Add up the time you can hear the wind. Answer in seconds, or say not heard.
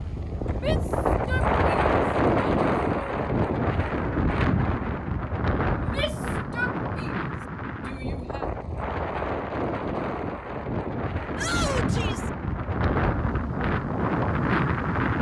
15 s.